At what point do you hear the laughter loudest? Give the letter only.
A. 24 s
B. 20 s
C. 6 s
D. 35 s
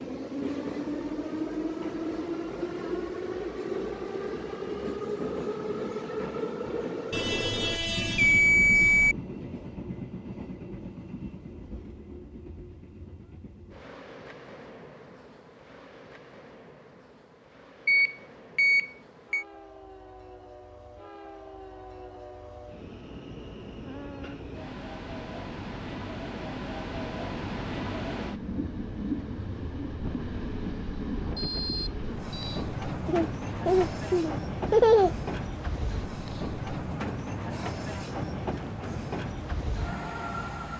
D.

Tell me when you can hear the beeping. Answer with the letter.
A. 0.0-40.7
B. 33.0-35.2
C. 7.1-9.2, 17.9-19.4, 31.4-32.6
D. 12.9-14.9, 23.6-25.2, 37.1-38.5
C.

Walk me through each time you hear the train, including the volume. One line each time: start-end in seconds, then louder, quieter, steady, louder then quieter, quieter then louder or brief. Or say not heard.
0.0-40.7 quieter then louder.